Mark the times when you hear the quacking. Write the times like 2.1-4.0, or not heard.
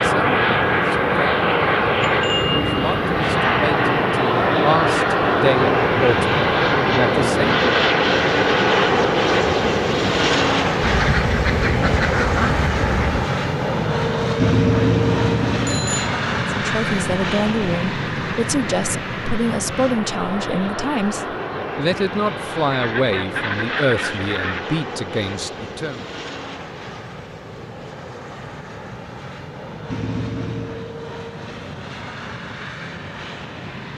10.8-13.2, 22.6-24.6.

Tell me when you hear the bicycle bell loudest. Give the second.
15 s.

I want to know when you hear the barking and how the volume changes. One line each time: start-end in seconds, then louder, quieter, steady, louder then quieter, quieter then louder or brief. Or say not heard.
not heard.